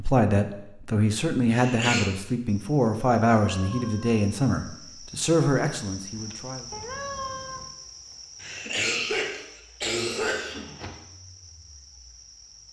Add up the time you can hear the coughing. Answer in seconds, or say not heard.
3 s.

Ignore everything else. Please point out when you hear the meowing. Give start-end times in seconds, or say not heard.
3.5-4.2, 6.7-7.7.